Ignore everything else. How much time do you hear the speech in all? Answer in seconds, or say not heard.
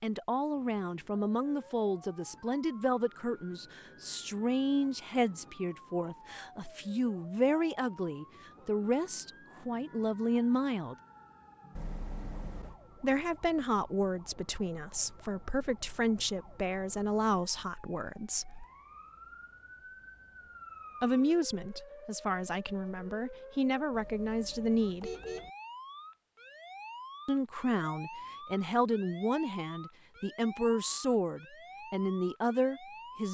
27 s.